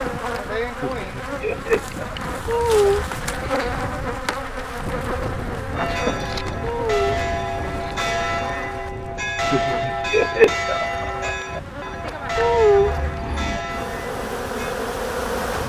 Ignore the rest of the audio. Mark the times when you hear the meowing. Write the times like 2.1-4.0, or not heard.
2.5-3.1, 6.6-7.8, 12.3-13.6.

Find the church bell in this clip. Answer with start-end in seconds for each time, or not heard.
5.8-14.8.